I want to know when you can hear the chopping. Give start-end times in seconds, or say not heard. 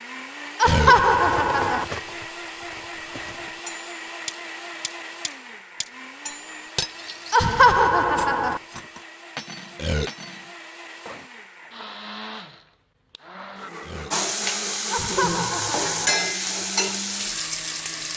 not heard.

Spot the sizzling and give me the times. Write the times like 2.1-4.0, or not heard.
14.1-18.1.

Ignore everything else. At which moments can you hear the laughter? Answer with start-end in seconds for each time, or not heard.
0.6-1.9, 7.3-8.6, 14.9-16.1.